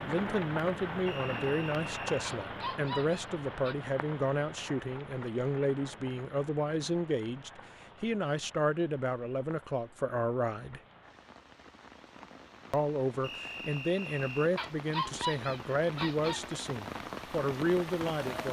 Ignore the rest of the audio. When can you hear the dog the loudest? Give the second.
15 s.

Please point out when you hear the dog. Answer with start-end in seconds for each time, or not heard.
2.2-3.8, 14.6-16.4.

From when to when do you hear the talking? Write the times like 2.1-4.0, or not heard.
0.0-10.8, 12.7-18.4.